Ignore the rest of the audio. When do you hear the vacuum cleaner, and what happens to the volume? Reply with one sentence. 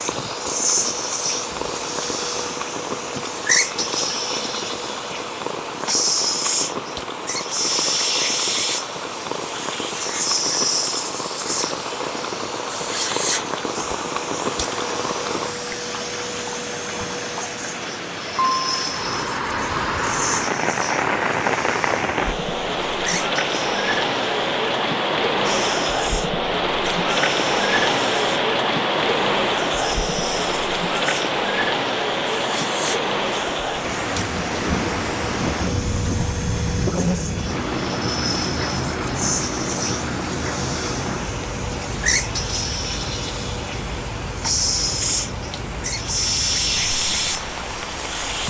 You can hear the vacuum cleaner from 0.0 to 48.4 s, getting quieter then louder.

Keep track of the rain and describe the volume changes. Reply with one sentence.
The loudness of the rain goes up, then down.